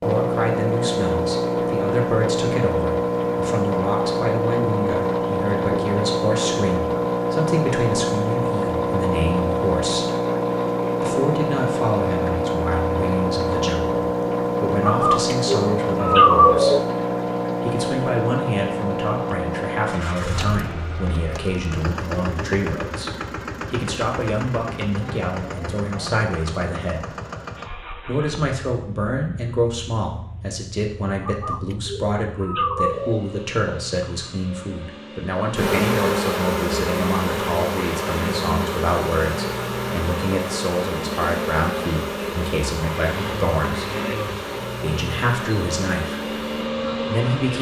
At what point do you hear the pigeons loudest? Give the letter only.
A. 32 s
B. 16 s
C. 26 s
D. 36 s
B.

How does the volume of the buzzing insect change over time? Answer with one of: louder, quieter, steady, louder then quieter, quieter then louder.
quieter.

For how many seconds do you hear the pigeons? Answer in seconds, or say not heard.
4 s.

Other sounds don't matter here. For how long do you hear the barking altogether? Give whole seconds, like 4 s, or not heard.
not heard.